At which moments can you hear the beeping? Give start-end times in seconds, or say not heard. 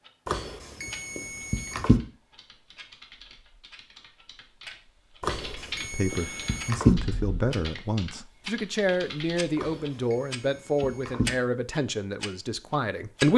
0.2-2.0, 5.2-7.0, 9.6-11.3.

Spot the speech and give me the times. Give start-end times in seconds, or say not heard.
5.9-13.3.